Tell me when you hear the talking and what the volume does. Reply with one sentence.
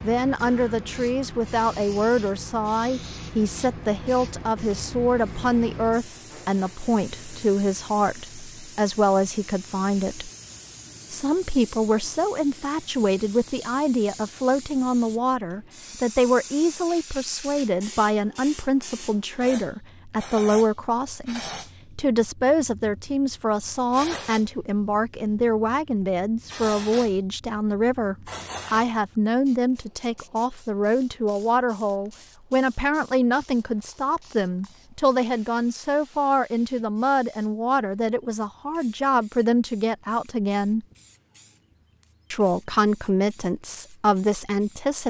You can hear the talking from 0.0 to 10.3 s, at a steady volume; from 11.1 to 40.9 s, at a steady volume; and briefly from 42.3 to 45.0 s.